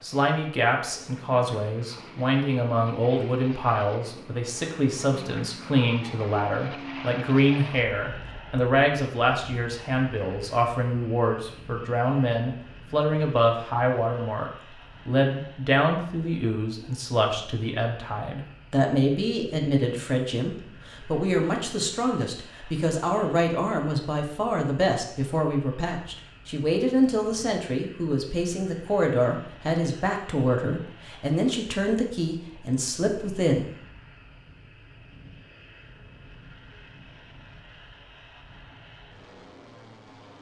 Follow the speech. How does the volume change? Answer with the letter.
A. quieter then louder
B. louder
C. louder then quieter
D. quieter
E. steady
E.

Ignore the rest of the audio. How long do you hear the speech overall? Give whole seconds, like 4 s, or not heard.
34 s.